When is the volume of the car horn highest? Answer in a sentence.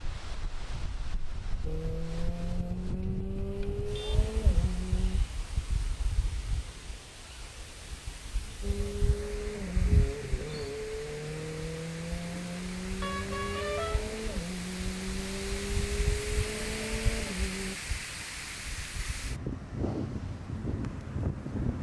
The loudest moment of the car horn is at 14 seconds.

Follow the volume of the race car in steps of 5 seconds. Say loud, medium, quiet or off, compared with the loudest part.
loud, loud, loud, loud, off.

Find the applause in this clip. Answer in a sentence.
You can't hear the applause here.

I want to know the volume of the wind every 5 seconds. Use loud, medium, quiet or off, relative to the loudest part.
medium, medium, medium, loud, loud.